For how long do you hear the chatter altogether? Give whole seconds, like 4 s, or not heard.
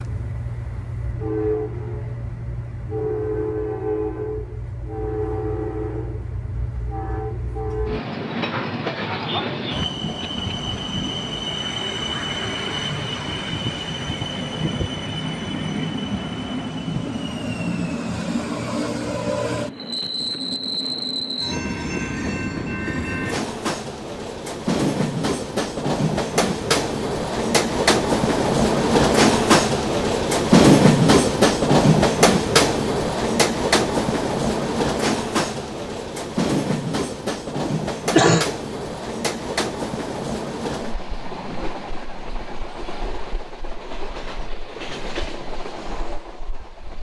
not heard.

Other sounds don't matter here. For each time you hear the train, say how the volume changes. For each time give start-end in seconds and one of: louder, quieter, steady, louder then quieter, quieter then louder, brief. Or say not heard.
0.0-46.9 louder then quieter.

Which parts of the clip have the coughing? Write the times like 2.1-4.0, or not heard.
10.2-10.7, 37.6-38.5.